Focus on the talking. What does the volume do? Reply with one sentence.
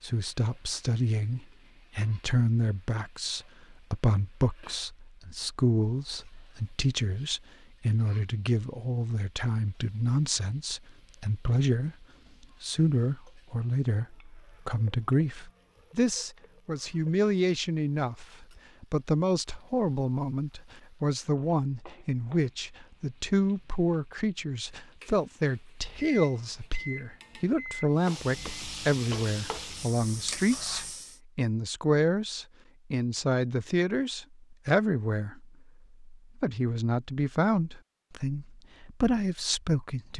The loudness of the talking stays about the same.